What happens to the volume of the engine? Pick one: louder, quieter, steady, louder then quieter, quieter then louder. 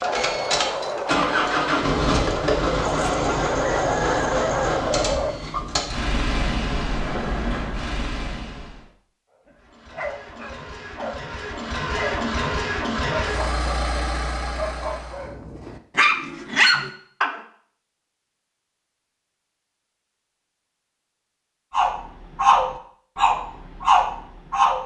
quieter then louder.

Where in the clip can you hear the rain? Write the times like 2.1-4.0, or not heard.
not heard.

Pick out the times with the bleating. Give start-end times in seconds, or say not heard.
not heard.